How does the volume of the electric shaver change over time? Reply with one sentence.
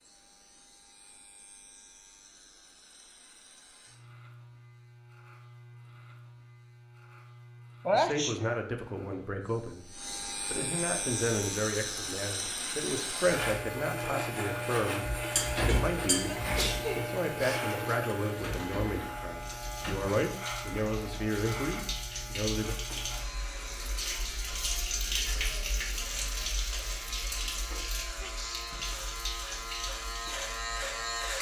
The loudness of the electric shaver goes up, then down.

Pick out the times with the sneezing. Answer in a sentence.
You can hear the sneezing from 7.8 to 8.4 s, from 16.2 to 17.9 s and from 28.2 to 29.1 s.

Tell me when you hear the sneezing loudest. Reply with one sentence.
The volume of the sneezing peaks at 8 seconds.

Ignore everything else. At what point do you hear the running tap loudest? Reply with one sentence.
The loudest moment of the running tap is at 25 seconds.